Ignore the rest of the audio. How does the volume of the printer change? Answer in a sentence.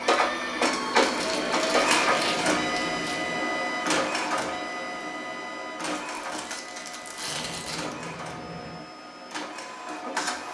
The volume of the printer goes down.